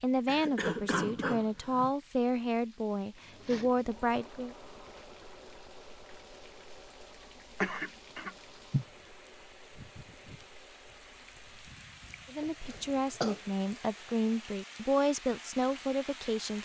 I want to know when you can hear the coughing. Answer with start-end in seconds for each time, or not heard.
0.2-1.9, 7.6-8.8, 12.7-13.4.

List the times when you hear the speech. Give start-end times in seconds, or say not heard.
0.0-4.5, 12.3-16.6.